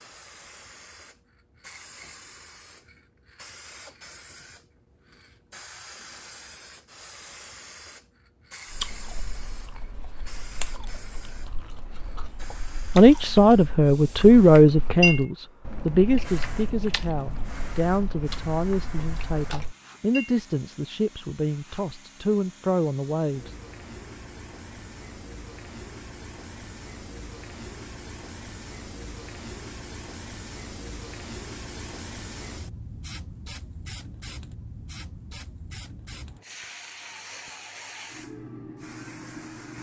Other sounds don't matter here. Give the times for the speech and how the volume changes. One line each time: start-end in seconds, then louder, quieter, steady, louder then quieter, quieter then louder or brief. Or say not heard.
12.9-23.6 quieter.